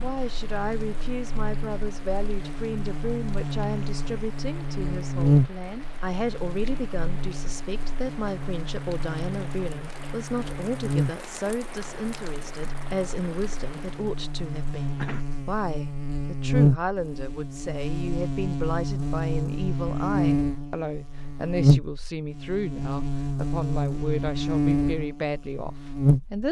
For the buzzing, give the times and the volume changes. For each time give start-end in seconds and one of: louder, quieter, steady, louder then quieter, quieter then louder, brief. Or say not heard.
0.0-26.4 quieter then louder.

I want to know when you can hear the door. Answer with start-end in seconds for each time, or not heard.
not heard.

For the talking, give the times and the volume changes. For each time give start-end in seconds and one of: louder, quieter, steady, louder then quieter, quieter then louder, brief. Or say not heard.
0.0-26.4 steady.